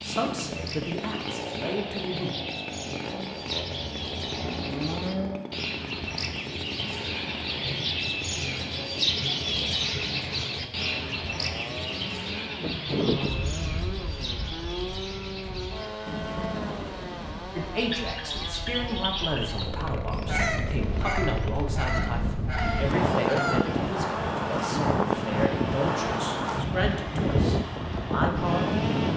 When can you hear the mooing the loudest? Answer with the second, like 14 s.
5 s.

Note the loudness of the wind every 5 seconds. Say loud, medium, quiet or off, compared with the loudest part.
off, off, medium, quiet, loud, loud.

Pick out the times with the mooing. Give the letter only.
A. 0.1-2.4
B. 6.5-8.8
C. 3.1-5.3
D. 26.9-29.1
C.